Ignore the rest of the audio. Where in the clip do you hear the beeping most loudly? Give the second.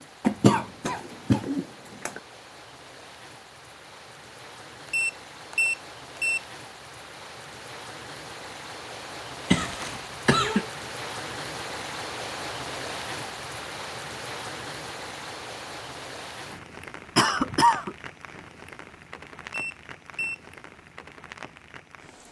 6 s.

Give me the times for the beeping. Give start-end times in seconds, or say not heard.
4.9-6.4, 19.5-20.4.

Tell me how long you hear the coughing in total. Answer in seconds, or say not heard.
4 s.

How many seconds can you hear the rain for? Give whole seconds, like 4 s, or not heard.
22 s.